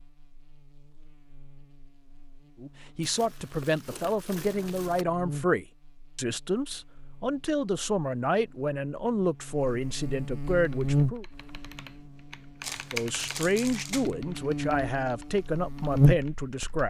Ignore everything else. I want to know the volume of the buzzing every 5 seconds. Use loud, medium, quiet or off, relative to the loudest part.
quiet, quiet, medium, loud.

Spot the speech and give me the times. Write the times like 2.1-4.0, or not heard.
2.6-11.2, 12.9-16.8.